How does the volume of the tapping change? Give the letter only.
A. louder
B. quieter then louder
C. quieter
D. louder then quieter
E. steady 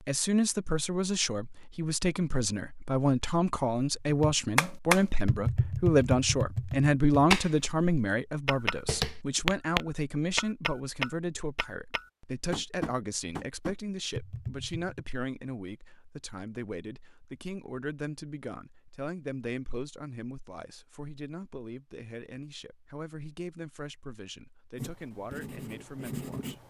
C.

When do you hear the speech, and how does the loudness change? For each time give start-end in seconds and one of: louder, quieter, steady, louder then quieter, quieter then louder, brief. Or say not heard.
0.0-26.6 quieter.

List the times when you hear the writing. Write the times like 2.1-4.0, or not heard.
24.8-26.6.